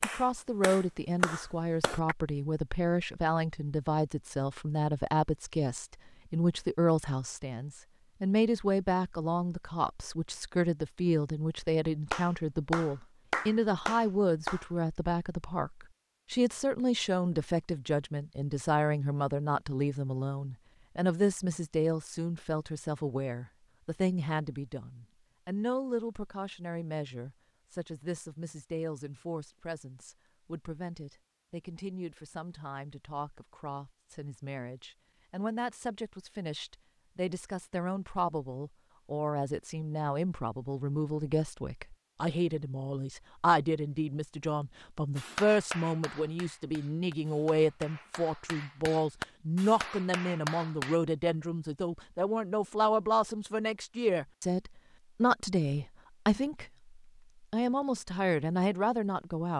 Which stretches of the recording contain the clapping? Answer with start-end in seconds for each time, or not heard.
0.0-2.1, 12.1-14.7, 45.1-51.0.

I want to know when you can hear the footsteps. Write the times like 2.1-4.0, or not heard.
not heard.